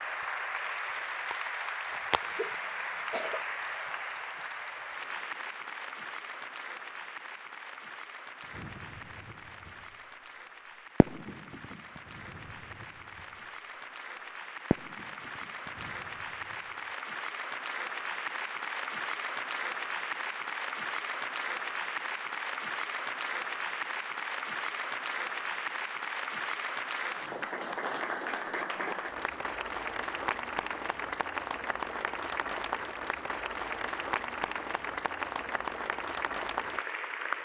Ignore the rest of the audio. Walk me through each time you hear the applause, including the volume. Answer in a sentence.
The applause can be heard from 0.0 to 37.4 s, getting quieter then louder.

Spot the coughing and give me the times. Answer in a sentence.
You can hear the coughing from 2.2 to 3.5 s.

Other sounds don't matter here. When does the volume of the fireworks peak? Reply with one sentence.
The loudest moment of the fireworks is at 15 seconds.